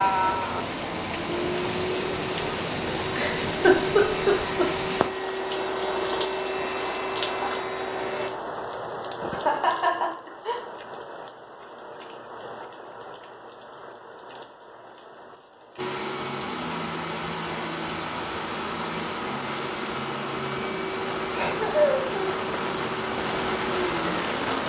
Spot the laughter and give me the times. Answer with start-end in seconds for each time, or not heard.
3.0-4.7, 9.3-10.6, 21.4-22.4.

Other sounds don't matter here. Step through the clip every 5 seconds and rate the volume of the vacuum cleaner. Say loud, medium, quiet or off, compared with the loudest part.
loud, loud, off, loud, loud.